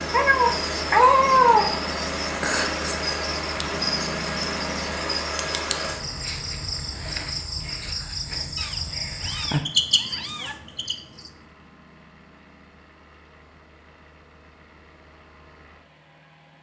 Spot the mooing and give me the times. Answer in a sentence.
The mooing can't be heard in this clip.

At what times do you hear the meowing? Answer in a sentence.
You can hear the meowing from 0.1 to 1.7 s and from 8.6 to 10.6 s.